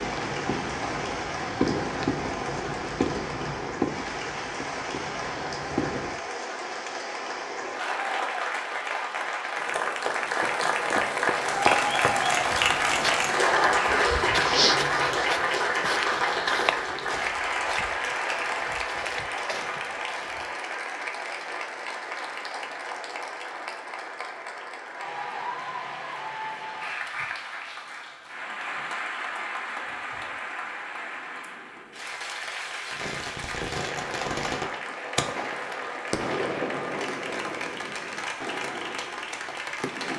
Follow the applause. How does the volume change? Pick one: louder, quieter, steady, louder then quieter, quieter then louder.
louder then quieter.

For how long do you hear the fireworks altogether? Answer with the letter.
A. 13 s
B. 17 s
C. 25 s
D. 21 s
A.